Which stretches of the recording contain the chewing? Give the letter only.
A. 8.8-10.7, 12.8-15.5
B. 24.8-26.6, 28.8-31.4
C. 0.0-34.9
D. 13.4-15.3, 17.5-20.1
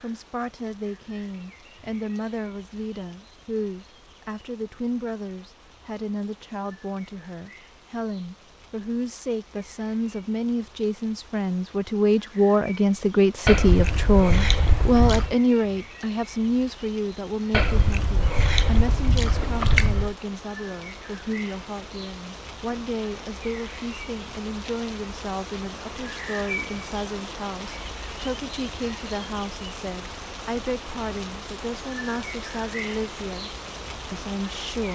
D.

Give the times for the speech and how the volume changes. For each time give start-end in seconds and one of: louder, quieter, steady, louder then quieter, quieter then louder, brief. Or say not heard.
0.0-34.9 louder then quieter.